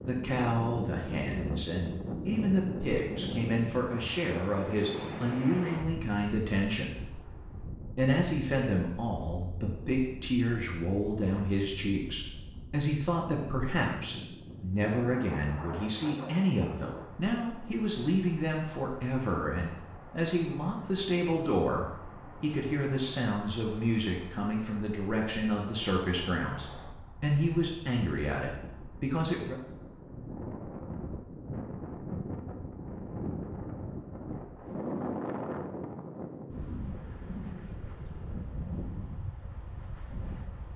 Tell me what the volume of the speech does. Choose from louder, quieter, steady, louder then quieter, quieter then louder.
steady.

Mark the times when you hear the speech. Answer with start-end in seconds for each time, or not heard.
0.1-29.6.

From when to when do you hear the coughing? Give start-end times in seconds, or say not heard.
not heard.